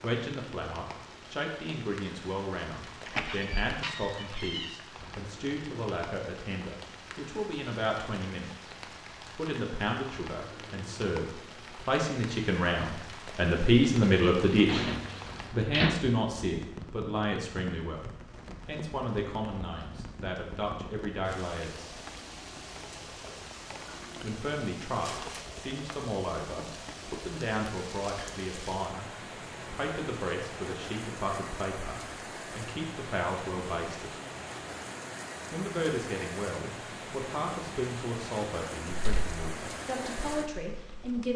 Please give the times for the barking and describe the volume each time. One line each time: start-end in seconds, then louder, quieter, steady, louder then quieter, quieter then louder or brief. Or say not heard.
not heard.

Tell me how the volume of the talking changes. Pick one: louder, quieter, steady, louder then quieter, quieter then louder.
louder then quieter.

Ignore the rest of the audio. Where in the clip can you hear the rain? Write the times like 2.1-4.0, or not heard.
0.0-41.3.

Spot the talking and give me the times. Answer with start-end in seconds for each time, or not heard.
0.0-8.5, 9.3-14.8, 15.5-22.0, 24.2-29.1, 29.7-34.1, 35.5-41.3.